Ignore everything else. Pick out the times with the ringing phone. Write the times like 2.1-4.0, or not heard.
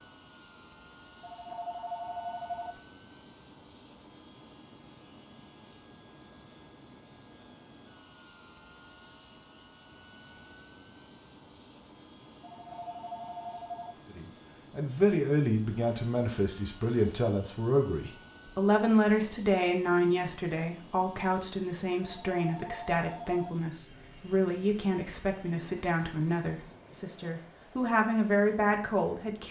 1.2-2.8, 12.4-14.0, 22.0-23.6.